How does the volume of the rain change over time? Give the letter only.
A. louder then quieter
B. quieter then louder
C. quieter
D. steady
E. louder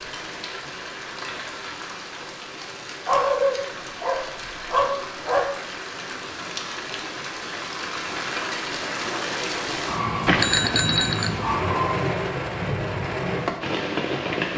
E.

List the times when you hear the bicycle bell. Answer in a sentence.
You can hear the bicycle bell from 10.2 to 11.3 s.